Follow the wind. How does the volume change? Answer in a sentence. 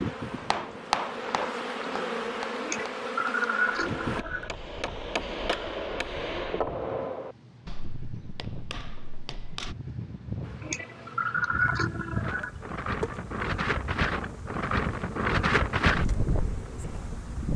The volume of the wind goes up.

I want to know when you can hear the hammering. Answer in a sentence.
You can hear the hammering from 0.3 to 9.8 s.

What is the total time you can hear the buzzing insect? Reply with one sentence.
The buzzing insect can be heard for 11 seconds in total.